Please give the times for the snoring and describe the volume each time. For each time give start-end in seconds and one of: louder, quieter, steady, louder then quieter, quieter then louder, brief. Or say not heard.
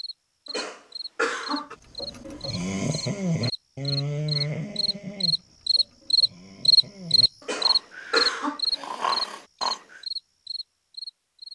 2.0-10.0 quieter then louder.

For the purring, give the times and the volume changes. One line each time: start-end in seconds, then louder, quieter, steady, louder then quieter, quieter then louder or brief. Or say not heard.
not heard.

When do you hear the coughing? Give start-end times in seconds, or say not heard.
0.5-1.8, 7.4-8.6.